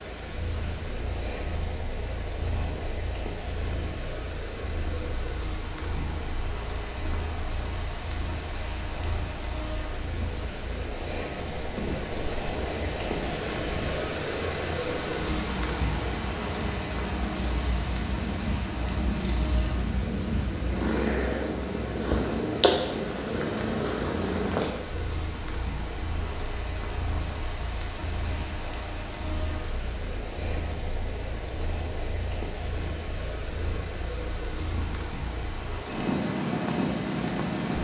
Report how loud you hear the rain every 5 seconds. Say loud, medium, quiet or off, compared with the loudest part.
medium, medium, loud, loud, medium, medium, medium, medium.